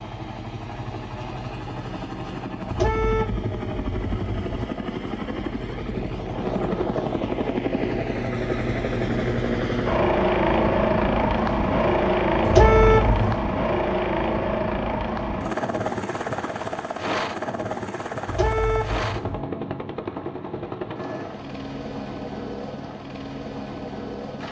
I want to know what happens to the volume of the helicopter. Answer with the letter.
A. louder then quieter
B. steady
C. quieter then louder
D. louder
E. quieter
A.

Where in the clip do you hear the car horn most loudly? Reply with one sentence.
The volume of the car horn peaks at 13 seconds.